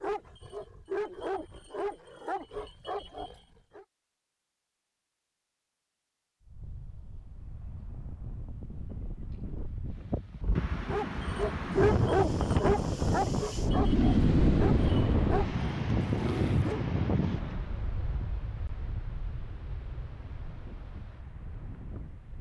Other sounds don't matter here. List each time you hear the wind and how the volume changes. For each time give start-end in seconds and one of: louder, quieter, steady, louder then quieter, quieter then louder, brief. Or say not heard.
6.4-22.3 louder then quieter.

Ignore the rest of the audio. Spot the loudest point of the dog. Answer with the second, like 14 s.
12 s.